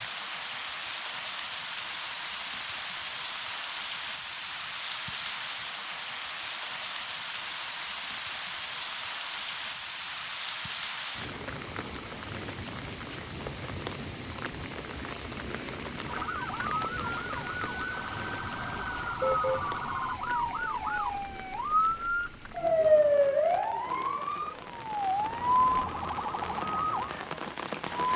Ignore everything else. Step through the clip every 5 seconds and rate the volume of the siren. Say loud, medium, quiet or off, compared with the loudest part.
off, off, off, medium, loud, loud.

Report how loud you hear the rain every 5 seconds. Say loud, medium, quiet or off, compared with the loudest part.
loud, loud, loud, loud, medium, loud.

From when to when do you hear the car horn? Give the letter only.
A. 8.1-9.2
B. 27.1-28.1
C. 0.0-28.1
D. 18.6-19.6
D.